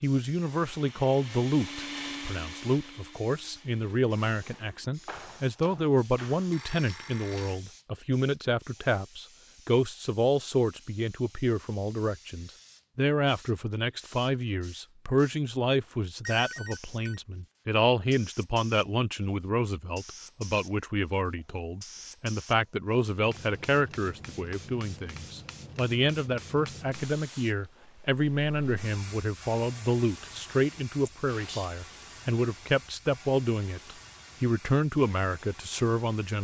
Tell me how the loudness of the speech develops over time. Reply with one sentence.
The volume of the speech stays about the same.